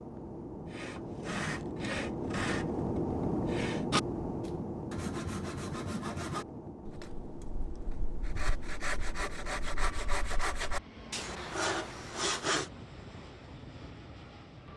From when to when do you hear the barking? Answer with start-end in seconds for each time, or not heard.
not heard.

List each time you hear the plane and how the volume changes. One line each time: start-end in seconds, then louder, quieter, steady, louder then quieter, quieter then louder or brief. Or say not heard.
0.0-14.7 quieter.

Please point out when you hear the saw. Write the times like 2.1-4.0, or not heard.
0.7-12.7.